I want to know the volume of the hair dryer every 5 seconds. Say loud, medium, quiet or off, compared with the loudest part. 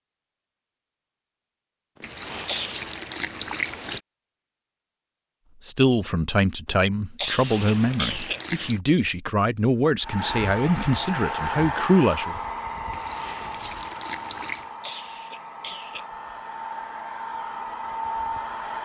off, off, loud, loud.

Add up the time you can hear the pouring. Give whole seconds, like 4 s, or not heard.
5 s.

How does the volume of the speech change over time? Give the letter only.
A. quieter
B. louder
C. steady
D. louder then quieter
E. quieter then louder
C.